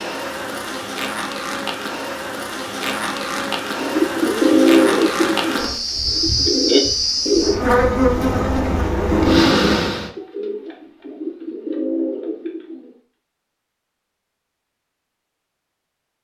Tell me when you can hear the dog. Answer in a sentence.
You can't hear the dog here.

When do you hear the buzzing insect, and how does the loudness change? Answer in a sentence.
The buzzing insect can be heard from 0.0 to 10.1 s, getting louder.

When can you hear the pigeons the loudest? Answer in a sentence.
The volume of the pigeons peaks at 5 seconds.